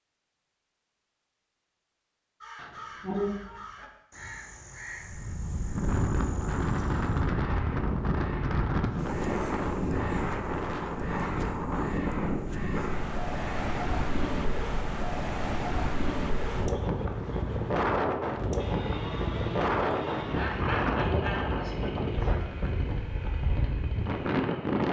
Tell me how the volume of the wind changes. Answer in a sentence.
The volume of the wind stays about the same.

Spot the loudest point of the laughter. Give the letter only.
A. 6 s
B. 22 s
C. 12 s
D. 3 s
D.